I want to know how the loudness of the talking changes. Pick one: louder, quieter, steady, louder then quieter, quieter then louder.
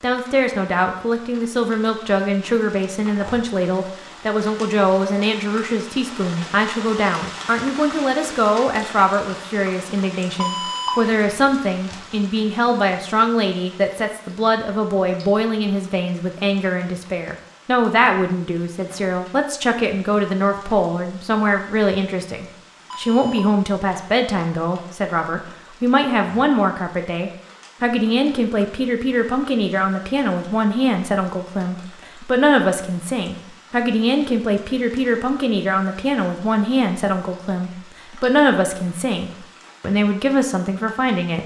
steady.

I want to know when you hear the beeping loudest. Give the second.
11 s.